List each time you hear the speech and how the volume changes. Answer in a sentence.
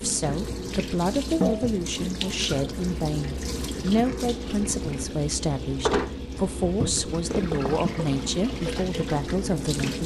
The speech can be heard from 0.0 to 10.0 s, at a steady volume.